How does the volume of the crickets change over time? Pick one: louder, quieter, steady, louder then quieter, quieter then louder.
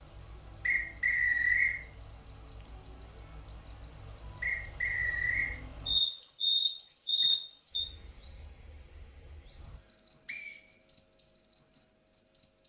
louder.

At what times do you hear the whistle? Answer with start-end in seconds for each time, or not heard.
0.7-1.8, 4.4-5.5, 10.2-10.7.